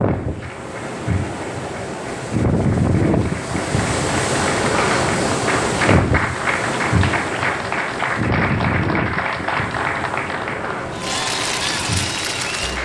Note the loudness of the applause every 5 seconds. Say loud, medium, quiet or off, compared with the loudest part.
medium, loud, loud.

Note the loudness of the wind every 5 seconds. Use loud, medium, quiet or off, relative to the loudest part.
loud, loud, medium.